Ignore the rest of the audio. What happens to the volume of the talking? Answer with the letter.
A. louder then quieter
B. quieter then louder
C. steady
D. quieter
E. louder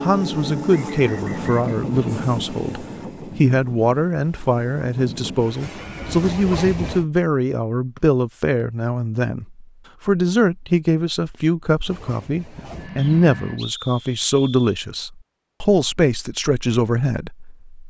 C.